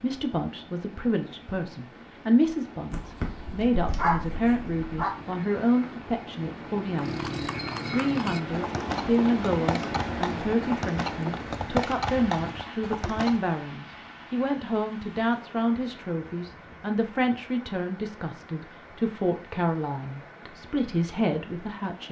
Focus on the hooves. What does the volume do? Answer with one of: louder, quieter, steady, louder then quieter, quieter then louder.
louder.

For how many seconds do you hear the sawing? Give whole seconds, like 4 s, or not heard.
not heard.